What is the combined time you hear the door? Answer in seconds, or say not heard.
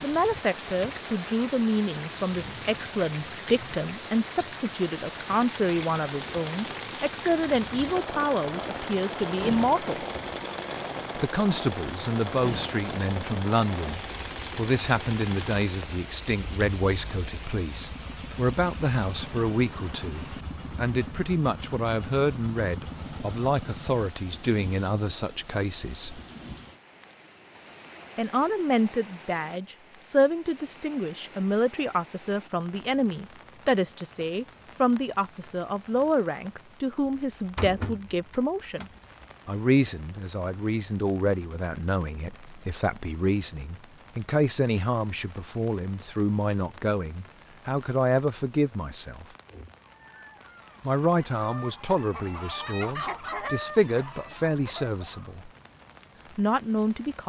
2 s.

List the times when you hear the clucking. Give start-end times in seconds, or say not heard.
49.8-55.4.